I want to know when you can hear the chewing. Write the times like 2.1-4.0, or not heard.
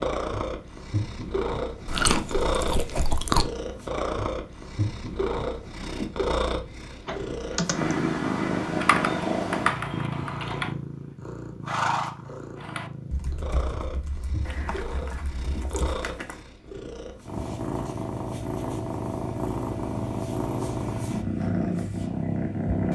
1.9-3.5, 14.4-16.4.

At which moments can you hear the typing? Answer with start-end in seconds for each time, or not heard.
7.0-10.8, 12.6-16.0.